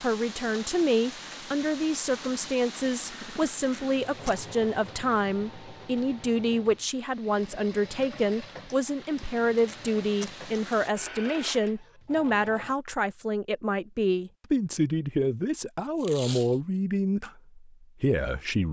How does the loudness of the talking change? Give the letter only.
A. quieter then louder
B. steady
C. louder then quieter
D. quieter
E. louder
B.